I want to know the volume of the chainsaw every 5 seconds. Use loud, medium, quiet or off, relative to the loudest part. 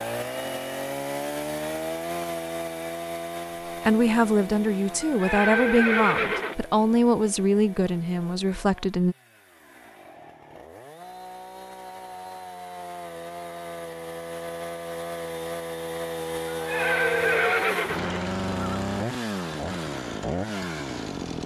loud, quiet, medium, loud, loud.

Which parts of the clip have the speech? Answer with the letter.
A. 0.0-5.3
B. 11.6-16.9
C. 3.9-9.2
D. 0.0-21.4
C.